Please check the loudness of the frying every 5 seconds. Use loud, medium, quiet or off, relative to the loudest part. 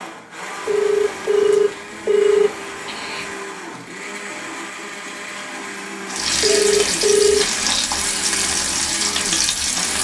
off, loud.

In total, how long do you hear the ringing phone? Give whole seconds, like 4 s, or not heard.
4 s.